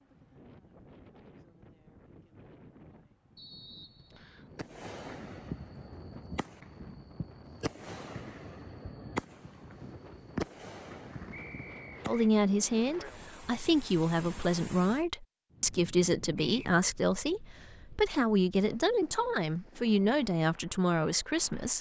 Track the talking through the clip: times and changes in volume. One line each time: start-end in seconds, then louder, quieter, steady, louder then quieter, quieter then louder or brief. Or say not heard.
12.1-21.7 steady.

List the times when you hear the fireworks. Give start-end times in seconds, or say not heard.
4.5-12.2.